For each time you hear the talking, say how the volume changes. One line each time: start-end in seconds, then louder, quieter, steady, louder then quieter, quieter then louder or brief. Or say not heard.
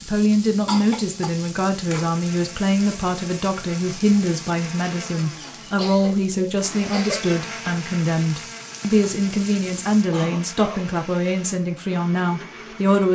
0.0-13.1 steady.